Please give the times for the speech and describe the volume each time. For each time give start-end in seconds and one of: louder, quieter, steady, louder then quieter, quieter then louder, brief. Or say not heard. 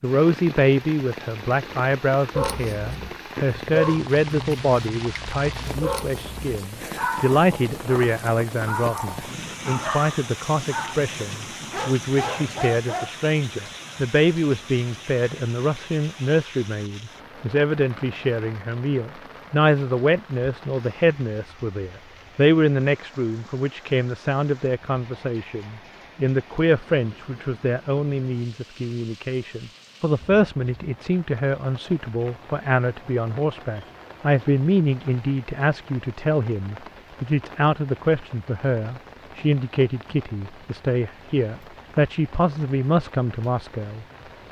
0.0-44.4 steady.